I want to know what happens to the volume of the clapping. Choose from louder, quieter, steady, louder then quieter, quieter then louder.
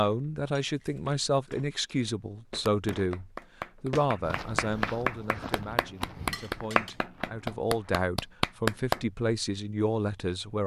louder.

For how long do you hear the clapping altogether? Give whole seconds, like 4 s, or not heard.
6 s.